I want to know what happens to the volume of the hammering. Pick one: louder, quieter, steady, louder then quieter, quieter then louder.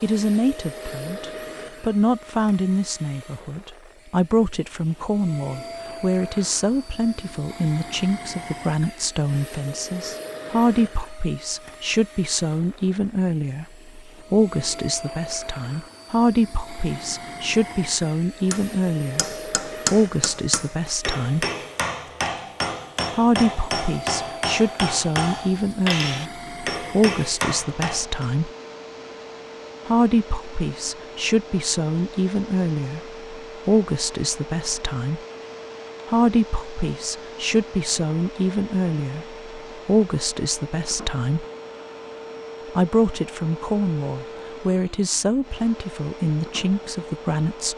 steady.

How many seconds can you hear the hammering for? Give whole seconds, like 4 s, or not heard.
10 s.